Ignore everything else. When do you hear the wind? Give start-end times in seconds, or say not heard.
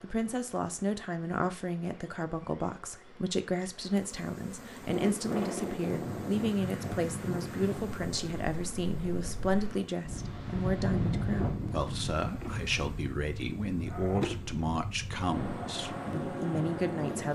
4.8-17.2.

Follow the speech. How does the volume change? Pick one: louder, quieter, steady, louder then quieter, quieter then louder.
steady.